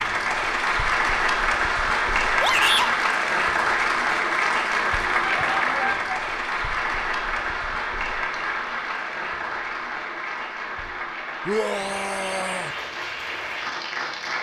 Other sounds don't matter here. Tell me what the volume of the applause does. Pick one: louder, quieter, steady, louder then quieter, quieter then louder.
quieter.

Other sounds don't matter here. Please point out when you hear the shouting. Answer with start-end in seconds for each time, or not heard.
2.4-3.0, 5.2-6.2, 11.4-12.7.